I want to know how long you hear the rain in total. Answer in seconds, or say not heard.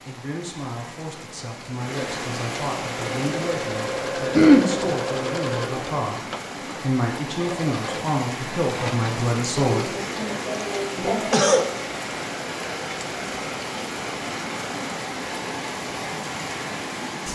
17 s.